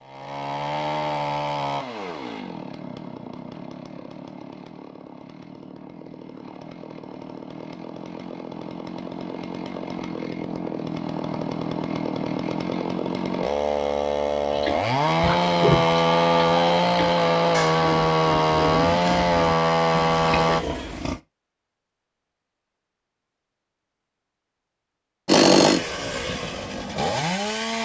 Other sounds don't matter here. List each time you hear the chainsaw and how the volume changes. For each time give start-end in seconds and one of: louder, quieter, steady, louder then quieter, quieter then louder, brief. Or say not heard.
0.0-20.6 quieter then louder
25.2-27.8 brief.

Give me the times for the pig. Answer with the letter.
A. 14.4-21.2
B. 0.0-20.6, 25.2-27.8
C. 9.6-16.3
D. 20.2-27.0
A.